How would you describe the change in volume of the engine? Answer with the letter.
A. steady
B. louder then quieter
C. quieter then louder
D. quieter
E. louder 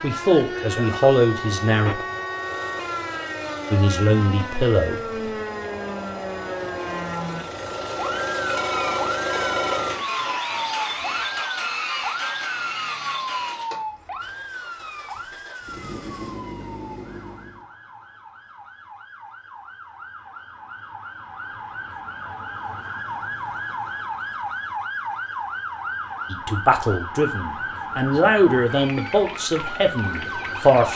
B.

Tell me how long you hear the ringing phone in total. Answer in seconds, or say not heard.
2 s.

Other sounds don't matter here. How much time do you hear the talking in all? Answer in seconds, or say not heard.
8 s.